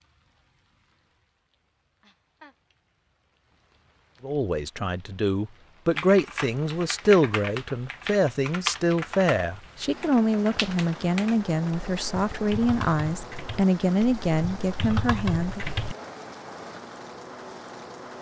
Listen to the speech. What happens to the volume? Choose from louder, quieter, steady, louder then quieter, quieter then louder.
steady.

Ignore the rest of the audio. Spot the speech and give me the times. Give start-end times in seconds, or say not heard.
4.2-15.6.